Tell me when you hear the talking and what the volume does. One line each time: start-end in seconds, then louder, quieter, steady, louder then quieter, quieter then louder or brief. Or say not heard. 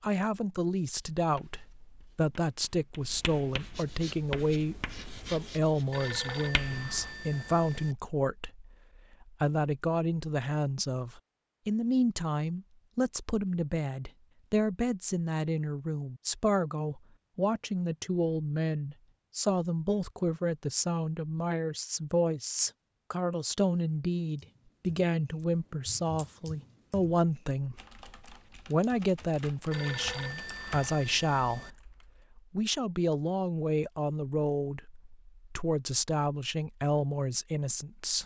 0.0-27.8 steady
28.6-38.2 steady.